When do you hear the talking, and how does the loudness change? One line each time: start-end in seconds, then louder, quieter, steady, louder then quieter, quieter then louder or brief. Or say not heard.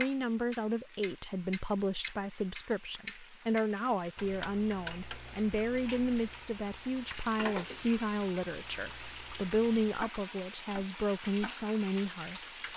0.0-12.7 steady.